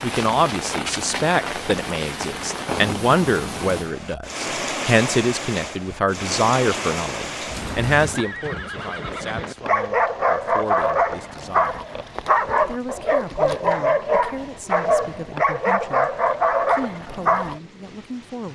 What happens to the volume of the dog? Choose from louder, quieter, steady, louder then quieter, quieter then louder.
steady.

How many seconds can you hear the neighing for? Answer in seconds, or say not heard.
2 s.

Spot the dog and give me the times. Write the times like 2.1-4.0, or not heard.
9.6-17.6.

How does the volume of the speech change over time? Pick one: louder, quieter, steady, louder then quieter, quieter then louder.
quieter.